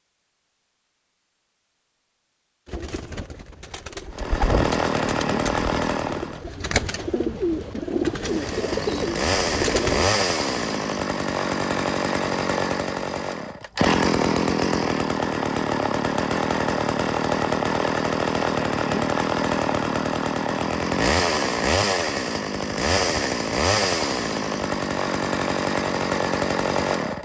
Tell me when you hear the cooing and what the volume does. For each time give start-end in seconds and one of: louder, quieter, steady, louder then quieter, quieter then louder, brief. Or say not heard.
2.6-10.1 louder.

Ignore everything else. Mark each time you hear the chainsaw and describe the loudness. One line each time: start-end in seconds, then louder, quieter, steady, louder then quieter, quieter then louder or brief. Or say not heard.
4.1-6.5 brief
8.2-27.2 steady.